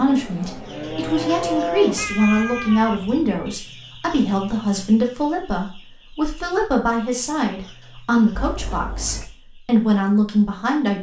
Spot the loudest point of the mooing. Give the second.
2 s.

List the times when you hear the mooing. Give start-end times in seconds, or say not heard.
0.1-2.0.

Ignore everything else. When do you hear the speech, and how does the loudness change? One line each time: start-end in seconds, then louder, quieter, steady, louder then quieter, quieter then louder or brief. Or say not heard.
0.0-10.9 steady.